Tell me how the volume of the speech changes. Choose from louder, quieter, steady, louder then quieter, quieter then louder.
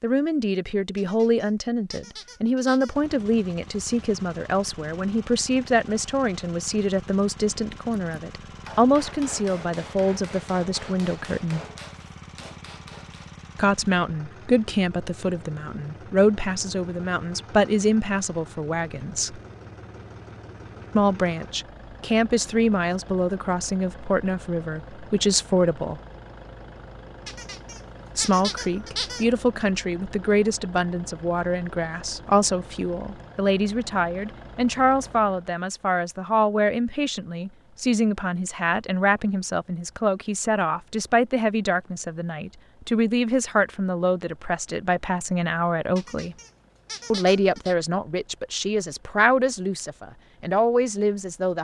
steady.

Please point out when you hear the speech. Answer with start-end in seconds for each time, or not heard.
0.0-11.6, 13.6-19.4, 20.9-26.0, 28.1-46.4, 47.1-51.6.